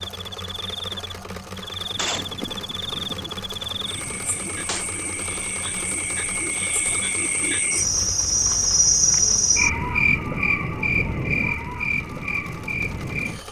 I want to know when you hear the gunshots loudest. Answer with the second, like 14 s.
2 s.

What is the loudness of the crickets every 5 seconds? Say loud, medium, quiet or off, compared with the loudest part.
medium, loud, loud.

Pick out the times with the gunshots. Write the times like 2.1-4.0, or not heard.
1.9-4.8.